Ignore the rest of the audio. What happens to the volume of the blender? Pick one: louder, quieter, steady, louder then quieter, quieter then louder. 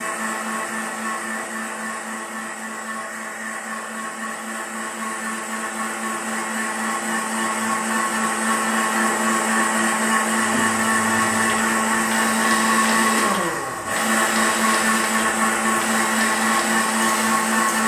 louder.